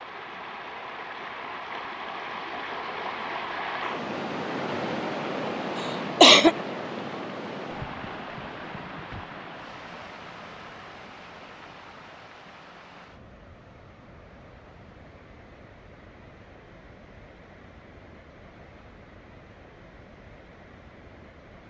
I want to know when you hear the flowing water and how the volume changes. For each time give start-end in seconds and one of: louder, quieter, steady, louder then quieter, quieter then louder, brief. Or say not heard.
0.0-21.6 quieter.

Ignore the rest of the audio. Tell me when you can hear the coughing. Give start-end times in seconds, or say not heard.
5.8-6.5.